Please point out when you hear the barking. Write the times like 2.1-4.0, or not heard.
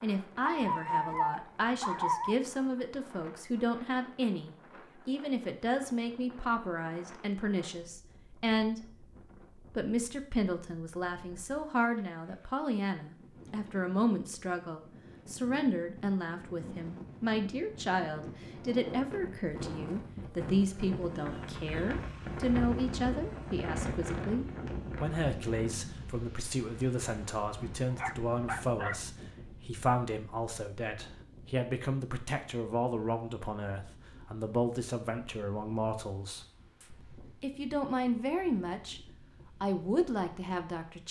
0.5-2.4, 27.9-29.0.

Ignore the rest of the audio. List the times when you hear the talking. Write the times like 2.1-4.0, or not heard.
0.0-41.0.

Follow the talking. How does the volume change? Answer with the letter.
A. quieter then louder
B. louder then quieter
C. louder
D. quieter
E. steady
E.